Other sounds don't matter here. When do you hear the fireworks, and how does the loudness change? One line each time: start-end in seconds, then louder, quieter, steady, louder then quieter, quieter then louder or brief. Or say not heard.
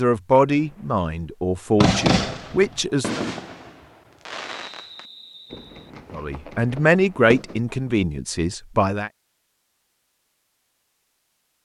1.8-7.6 quieter.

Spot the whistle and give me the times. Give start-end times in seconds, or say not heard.
4.6-5.9.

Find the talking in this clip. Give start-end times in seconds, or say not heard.
0.0-3.2, 6.1-9.1.